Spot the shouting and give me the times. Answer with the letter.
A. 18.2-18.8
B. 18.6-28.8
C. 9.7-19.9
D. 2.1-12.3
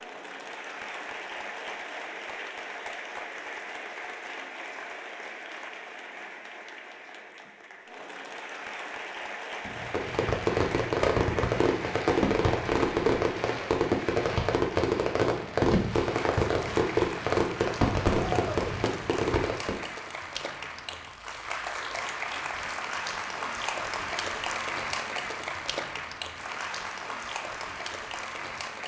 A.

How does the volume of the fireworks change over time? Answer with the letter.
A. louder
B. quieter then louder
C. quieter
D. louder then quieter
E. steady
E.